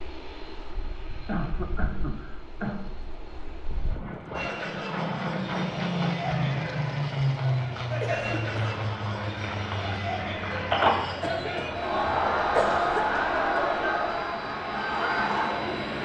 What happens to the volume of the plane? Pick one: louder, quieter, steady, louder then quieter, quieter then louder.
louder then quieter.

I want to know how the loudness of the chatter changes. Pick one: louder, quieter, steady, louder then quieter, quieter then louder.
louder.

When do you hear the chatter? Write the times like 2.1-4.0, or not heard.
4.3-15.9.